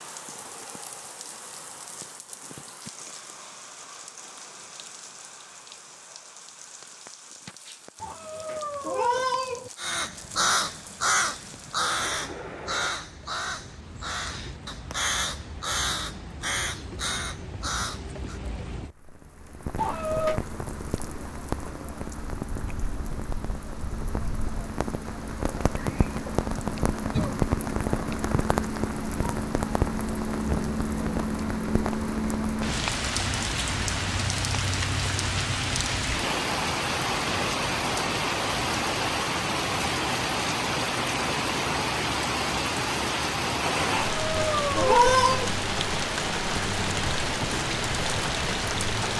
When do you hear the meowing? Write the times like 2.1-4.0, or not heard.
8.0-9.7, 19.8-20.4, 43.9-45.5.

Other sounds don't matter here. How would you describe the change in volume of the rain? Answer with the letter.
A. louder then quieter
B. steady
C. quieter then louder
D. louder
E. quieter
D.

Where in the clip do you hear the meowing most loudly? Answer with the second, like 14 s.
45 s.